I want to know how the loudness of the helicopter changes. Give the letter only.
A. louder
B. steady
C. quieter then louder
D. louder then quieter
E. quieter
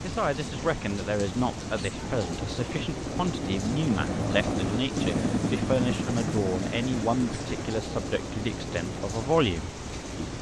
D.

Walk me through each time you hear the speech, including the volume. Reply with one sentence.
You can hear the speech from 0.0 to 10.3 s, at a steady volume.